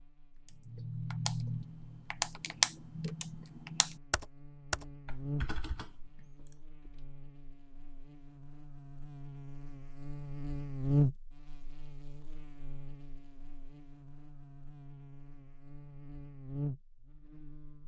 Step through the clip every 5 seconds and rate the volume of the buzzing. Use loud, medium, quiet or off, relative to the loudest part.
quiet, medium, loud, medium.